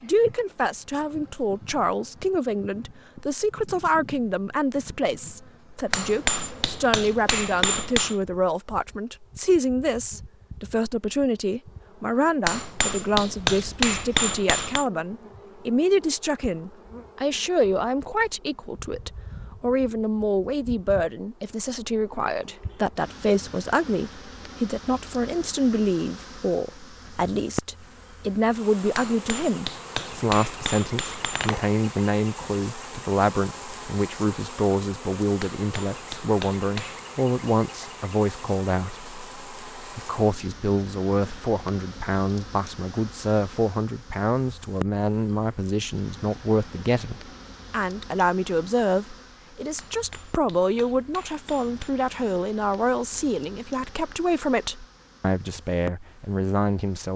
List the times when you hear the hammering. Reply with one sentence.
The hammering can be heard from 5.9 to 8.2 s, from 12.4 to 14.8 s, from 28.9 to 31.6 s, from 35.4 to 37.0 s and from 49.8 to 52.0 s.